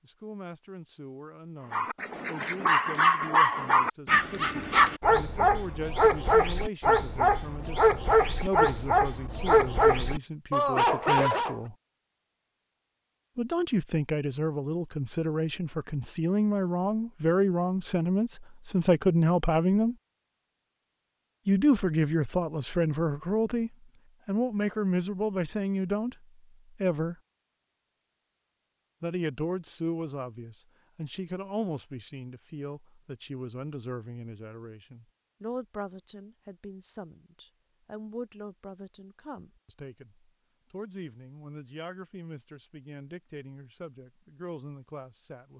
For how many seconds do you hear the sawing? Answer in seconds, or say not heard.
not heard.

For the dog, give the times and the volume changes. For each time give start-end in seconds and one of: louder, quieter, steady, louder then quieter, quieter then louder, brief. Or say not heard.
1.7-11.6 steady.